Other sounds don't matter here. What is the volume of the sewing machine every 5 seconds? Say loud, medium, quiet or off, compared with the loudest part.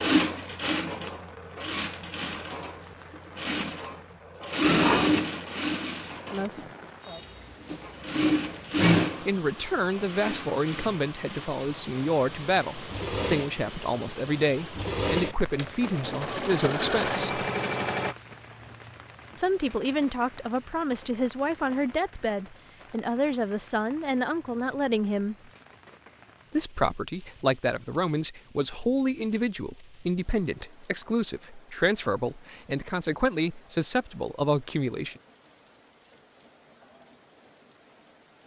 loud, loud, medium, loud, off, off, off, off.